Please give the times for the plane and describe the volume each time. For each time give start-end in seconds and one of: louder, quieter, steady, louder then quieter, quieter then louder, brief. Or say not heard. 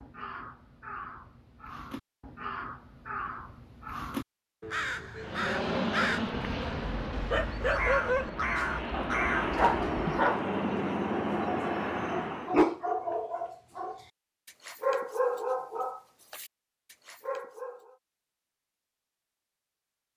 5.2-12.7 quieter then louder.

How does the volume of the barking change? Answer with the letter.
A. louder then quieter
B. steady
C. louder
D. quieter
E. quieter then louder
D.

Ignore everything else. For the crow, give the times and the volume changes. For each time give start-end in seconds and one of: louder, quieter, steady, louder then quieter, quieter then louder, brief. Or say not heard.
0.0-10.3 louder.